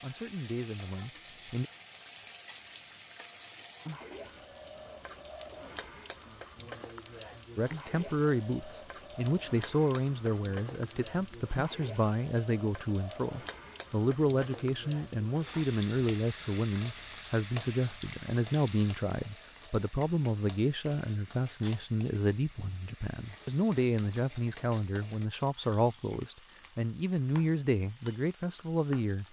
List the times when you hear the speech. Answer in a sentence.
The speech can be heard from 0.0 to 1.6 s and from 7.5 to 29.2 s.